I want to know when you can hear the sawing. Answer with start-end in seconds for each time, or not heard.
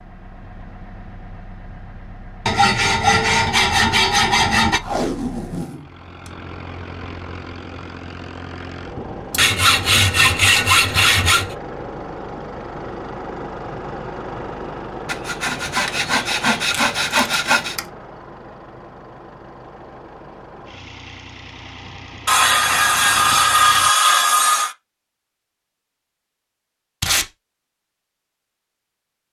2.5-4.8, 9.3-11.6, 15.1-17.8, 22.2-24.8.